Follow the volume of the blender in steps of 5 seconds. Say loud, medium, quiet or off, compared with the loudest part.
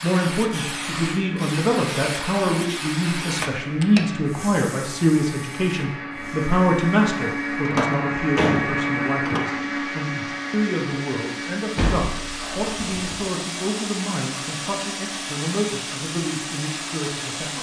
medium, loud, medium, medium.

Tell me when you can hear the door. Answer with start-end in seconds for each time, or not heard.
3.4-4.0, 7.7-9.4, 11.8-13.2.